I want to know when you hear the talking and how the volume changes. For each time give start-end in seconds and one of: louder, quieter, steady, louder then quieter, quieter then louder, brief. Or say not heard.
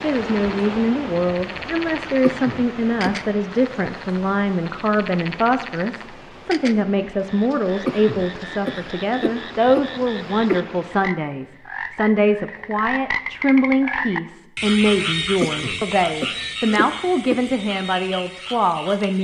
0.0-19.1 steady.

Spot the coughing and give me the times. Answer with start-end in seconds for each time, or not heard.
2.2-3.2, 7.8-10.6, 15.4-17.6.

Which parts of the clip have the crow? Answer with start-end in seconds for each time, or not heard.
not heard.